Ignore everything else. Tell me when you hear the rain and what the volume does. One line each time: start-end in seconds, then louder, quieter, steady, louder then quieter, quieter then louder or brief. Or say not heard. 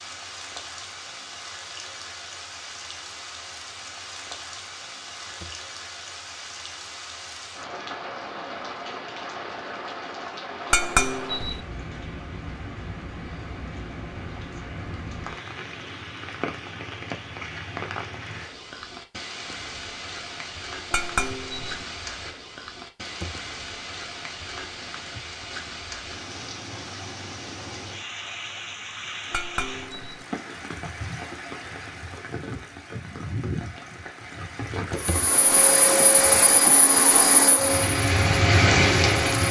0.0-39.4 louder.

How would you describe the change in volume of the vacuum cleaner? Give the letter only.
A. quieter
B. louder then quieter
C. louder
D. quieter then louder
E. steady
A.